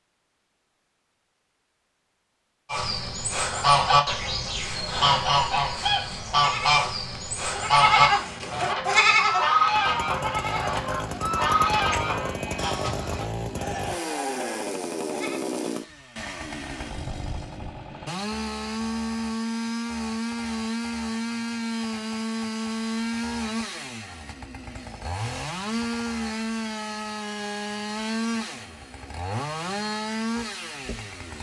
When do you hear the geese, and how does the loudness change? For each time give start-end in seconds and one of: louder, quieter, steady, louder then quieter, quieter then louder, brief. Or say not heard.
2.7-13.2 steady.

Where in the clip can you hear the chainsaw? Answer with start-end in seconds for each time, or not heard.
9.7-31.3.